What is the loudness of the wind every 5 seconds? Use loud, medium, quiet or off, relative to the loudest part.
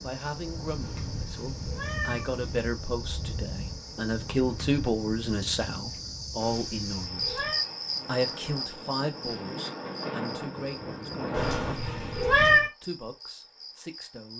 medium, medium, loud.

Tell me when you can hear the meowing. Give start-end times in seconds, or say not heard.
0.8-2.4, 6.4-7.6, 11.3-12.7.